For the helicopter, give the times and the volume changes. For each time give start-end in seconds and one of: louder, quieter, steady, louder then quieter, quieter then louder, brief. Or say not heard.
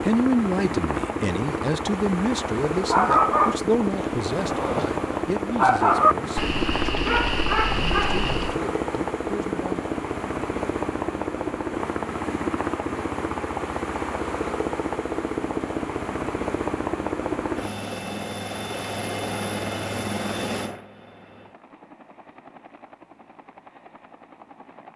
0.0-24.9 quieter.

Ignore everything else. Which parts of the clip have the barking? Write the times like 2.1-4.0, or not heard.
2.9-8.6.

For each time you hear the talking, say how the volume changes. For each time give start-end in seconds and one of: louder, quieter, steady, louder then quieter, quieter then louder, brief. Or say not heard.
0.0-9.8 quieter.